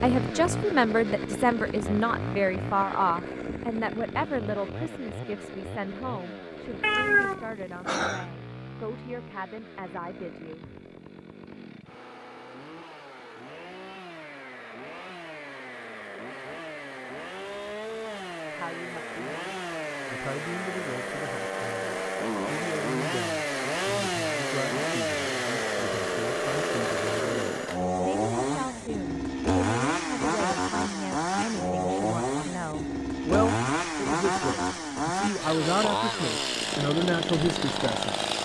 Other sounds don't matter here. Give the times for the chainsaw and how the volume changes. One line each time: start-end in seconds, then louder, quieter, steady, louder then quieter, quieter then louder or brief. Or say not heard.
0.0-38.3 quieter then louder.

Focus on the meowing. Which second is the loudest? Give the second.
7 s.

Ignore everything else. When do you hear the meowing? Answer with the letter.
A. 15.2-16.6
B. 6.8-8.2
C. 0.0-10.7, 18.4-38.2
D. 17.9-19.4
B.